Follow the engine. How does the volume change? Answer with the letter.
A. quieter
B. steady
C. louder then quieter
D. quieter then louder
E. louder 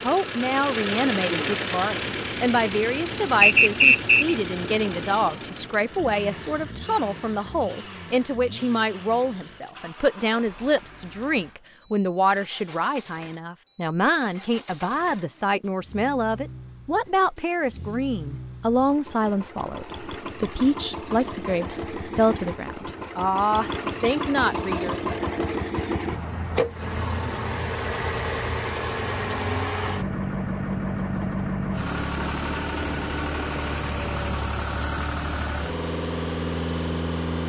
D.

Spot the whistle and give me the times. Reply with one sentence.
The whistle can be heard from 3.4 to 4.3 s.